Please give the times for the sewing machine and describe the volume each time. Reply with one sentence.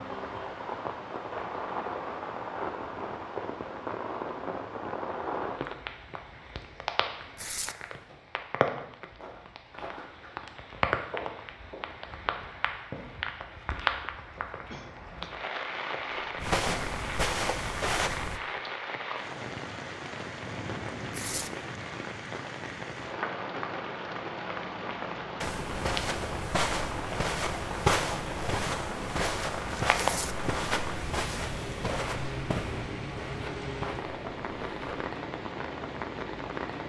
The sewing machine can't be heard in this clip.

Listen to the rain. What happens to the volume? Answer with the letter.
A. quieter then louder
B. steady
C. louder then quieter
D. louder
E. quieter
B.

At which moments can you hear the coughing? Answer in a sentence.
The coughing can be heard from 14.7 to 15.3 s.